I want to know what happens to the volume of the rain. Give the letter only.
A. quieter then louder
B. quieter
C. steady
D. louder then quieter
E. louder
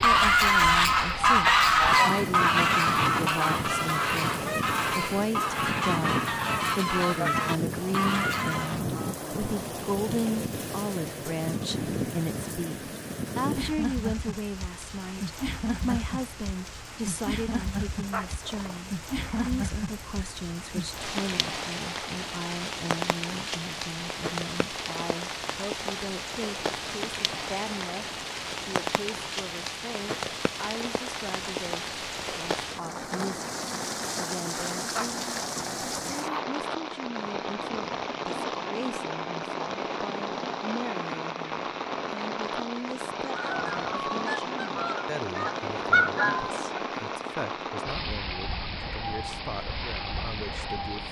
C.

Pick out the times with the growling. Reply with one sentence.
The growling can be heard from 18.1 to 19.5 s and from 35.0 to 36.5 s.